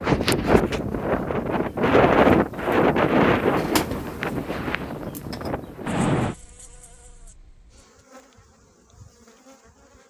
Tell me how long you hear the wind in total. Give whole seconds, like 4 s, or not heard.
6 s.